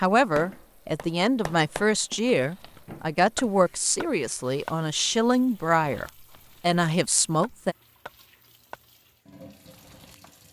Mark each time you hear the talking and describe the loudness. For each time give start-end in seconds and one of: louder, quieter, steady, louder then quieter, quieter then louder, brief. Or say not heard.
0.0-7.8 steady.